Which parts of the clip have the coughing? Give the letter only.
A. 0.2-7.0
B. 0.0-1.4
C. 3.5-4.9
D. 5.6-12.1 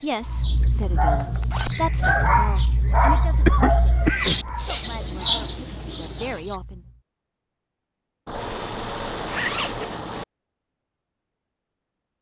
C.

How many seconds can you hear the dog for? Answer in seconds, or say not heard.
7 s.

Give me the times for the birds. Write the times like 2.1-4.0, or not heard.
0.0-6.5.